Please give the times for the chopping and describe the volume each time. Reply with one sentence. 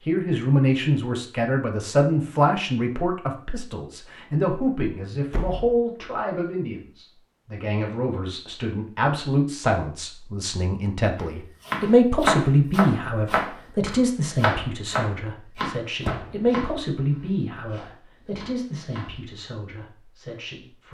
You can hear the chopping from 11.2 to 19.1 s, getting quieter.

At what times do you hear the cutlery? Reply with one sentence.
The cutlery can't be heard in this clip.